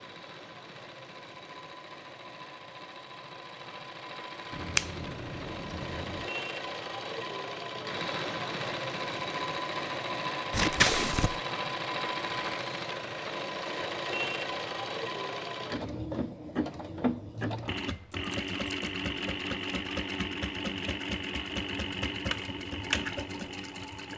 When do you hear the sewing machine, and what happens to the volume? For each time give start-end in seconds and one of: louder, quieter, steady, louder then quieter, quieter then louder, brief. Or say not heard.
0.0-24.1 louder.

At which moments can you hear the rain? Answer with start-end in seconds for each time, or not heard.
not heard.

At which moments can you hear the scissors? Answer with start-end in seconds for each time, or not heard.
4.5-6.2, 10.5-11.4, 18.1-18.9.